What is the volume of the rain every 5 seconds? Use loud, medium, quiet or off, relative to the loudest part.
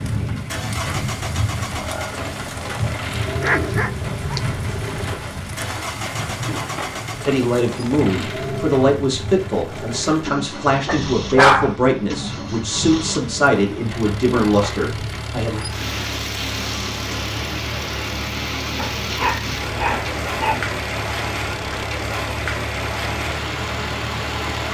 loud, medium, medium, loud, loud.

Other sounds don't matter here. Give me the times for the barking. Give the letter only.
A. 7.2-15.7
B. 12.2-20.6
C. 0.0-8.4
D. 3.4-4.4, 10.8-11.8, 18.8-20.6
D.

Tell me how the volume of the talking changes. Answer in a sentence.
The volume of the talking stays about the same.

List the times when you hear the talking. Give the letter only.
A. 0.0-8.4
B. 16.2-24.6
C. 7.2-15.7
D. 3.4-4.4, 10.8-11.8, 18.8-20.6
C.